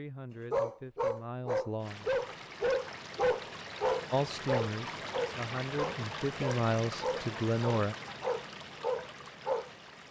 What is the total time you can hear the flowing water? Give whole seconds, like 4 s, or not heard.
8 s.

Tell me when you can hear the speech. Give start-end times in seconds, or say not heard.
0.0-2.1, 4.1-8.0.